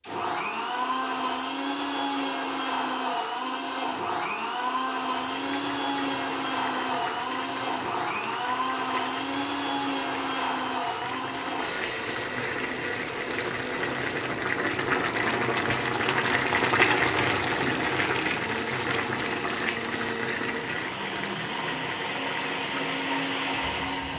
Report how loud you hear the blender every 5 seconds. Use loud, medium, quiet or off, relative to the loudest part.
loud, loud, loud, medium, loud.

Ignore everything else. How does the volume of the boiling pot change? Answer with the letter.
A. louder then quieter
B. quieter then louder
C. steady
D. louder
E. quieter
A.